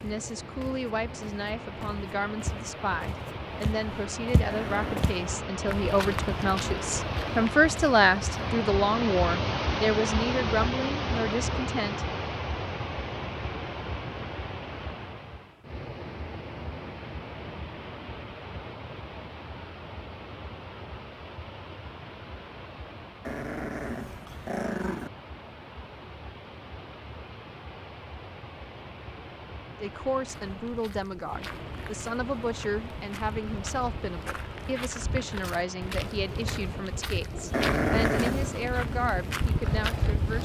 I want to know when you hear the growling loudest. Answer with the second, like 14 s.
38 s.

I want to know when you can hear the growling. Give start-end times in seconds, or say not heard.
4.5-5.1, 23.2-25.1, 37.5-38.6.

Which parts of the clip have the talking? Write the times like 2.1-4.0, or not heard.
0.0-12.1, 29.8-40.3.